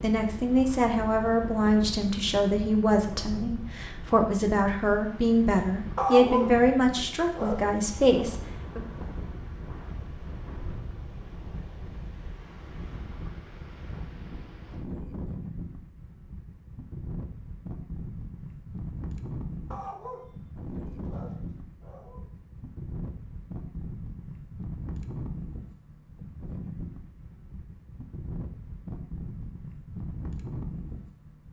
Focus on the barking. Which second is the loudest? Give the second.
6 s.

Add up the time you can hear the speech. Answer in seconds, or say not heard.
9 s.